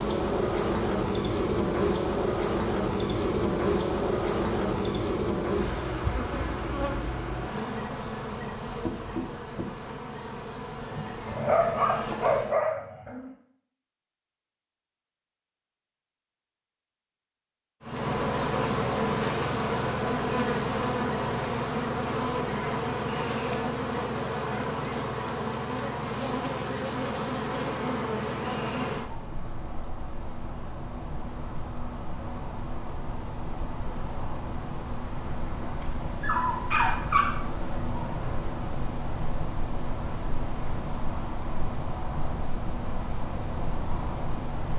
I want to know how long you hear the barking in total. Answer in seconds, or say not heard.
4 s.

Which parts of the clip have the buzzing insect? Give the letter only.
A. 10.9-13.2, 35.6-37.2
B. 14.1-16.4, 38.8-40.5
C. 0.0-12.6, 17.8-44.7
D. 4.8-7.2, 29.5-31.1
C.